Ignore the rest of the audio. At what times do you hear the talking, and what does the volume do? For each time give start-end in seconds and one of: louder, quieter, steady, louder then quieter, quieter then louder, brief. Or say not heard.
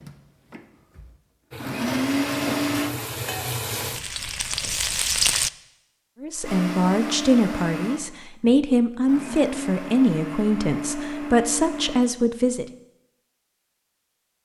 6.2-12.7 steady.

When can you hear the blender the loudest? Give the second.
2 s.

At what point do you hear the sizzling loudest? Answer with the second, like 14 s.
5 s.